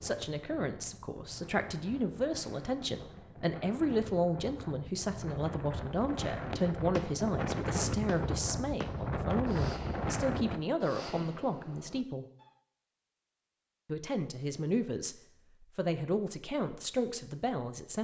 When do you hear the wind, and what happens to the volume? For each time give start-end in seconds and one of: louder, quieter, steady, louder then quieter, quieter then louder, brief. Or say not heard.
0.0-10.6 louder.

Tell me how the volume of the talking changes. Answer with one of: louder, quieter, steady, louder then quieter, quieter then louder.
steady.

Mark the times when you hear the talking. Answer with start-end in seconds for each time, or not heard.
0.0-12.2, 13.8-18.0.